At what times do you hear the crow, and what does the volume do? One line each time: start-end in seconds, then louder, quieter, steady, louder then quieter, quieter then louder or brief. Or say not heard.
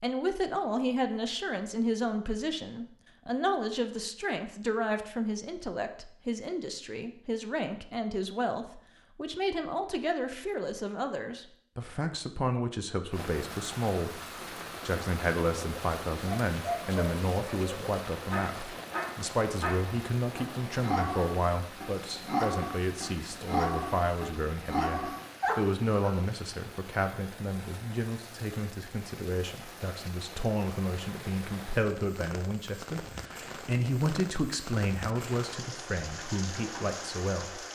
not heard.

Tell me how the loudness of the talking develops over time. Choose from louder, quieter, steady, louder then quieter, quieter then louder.
steady.